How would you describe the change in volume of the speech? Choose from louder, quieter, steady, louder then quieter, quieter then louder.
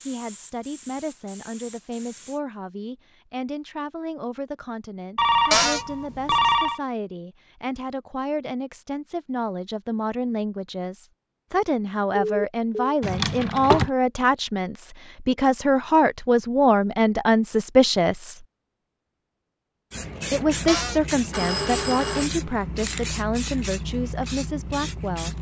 louder then quieter.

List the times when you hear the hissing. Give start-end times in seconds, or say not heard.
0.0-2.4, 19.9-25.3.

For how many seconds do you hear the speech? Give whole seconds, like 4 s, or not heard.
23 s.